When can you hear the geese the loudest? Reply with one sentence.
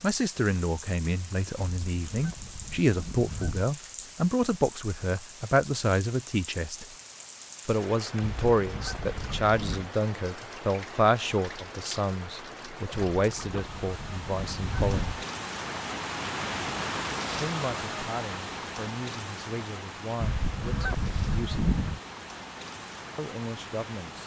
The loudest moment of the geese is at 22 seconds.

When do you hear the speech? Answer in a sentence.
You can hear the speech from 0.0 to 6.8 s, from 7.7 to 15.2 s, from 17.3 to 21.6 s and from 23.1 to 24.2 s.